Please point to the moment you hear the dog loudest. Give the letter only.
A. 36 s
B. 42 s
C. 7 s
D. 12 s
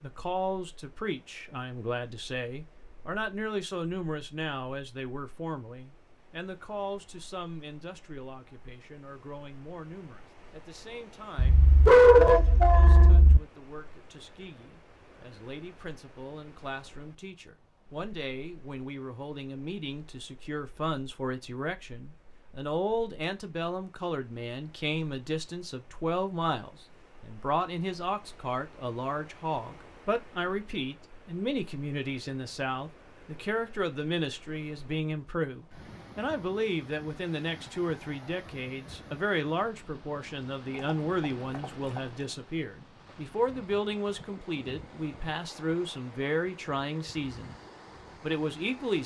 D.